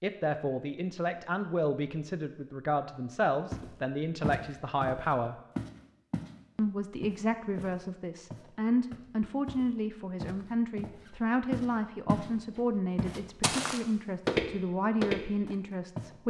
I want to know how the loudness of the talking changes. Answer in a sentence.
The volume of the talking stays about the same.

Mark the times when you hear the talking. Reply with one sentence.
You can hear the talking from 0.0 to 5.3 s and from 6.5 to 16.2 s.